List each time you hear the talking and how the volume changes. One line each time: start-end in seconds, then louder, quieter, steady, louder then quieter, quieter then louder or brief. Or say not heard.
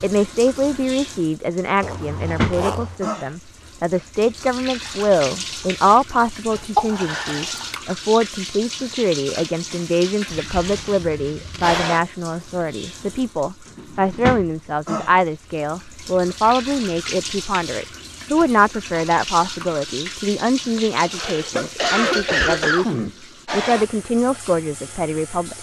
0.0-25.5 steady.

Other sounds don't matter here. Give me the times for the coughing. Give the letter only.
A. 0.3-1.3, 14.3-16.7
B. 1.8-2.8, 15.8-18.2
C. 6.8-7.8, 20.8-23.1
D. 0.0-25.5
C.